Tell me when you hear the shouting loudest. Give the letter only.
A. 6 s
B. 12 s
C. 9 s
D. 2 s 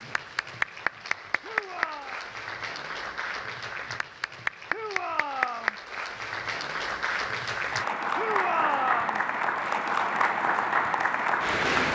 C.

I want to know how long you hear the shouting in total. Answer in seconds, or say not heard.
3 s.